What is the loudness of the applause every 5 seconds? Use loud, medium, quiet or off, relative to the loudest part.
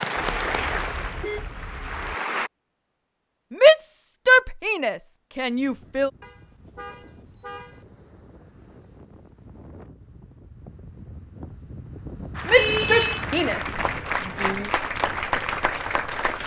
loud, off, loud, loud.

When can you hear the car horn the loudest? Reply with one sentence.
The volume of the car horn peaks at 13 seconds.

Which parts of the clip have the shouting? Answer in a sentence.
The shouting can be heard from 3.5 to 6.1 s and from 12.4 to 14.7 s.